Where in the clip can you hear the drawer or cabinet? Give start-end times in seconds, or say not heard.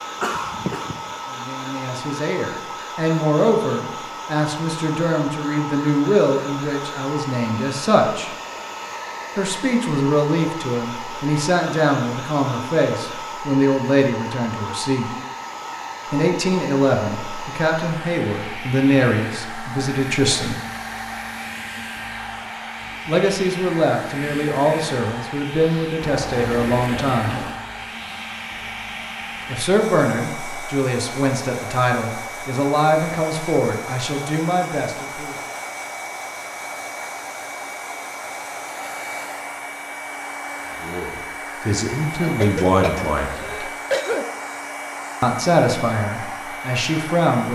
not heard.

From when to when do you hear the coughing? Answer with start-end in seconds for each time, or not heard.
0.2-1.0, 42.2-44.2.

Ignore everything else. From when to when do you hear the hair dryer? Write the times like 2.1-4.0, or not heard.
0.0-47.4.